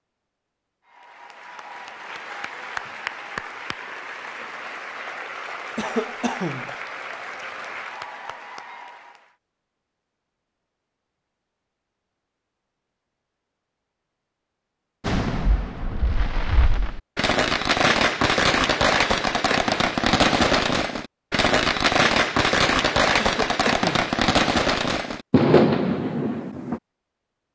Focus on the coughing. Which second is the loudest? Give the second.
6 s.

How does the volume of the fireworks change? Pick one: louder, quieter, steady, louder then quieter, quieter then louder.
louder.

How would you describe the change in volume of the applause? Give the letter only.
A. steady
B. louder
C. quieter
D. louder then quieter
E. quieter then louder
A.